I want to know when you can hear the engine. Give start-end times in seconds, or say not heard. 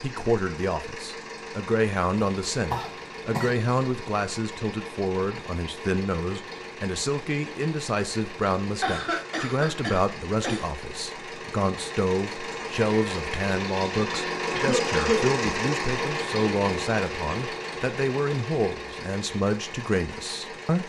0.0-20.8.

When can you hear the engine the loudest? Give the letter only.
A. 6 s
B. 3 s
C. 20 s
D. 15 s
D.